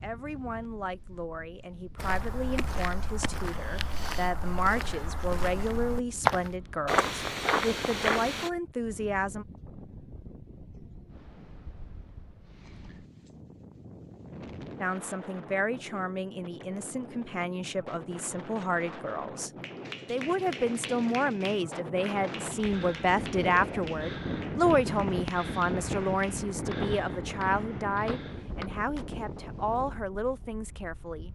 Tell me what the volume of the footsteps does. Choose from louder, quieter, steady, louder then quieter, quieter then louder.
louder.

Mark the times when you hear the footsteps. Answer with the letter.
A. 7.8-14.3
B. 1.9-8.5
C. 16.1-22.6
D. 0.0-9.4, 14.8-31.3
B.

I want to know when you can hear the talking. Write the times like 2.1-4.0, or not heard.
0.0-9.4, 14.8-31.3.